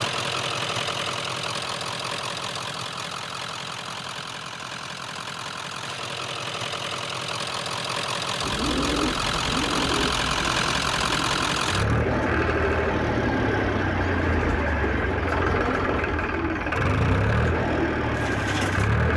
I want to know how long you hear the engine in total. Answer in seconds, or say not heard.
19 s.